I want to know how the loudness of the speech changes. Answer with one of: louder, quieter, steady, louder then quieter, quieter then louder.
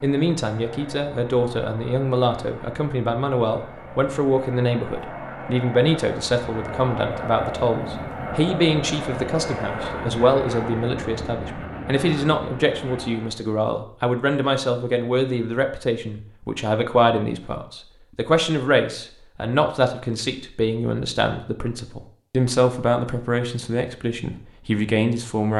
steady.